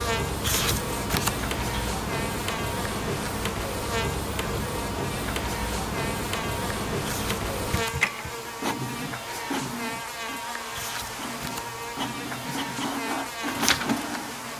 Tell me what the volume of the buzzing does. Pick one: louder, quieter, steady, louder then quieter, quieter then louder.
steady.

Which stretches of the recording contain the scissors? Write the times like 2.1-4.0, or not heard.
0.4-1.9, 7.0-8.1, 10.7-12.0.